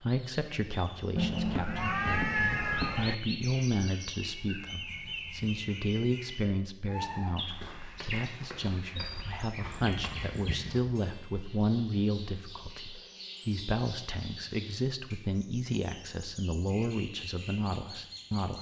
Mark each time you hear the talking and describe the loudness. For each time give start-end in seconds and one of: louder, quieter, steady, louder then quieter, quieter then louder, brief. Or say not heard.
0.0-18.5 steady.